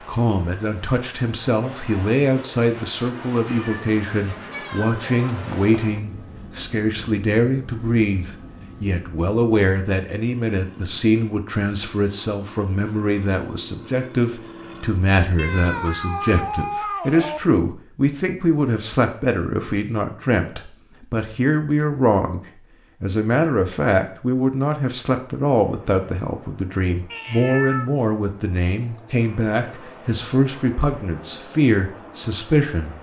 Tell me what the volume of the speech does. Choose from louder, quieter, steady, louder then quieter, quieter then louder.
steady.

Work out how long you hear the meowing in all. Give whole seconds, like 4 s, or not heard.
5 s.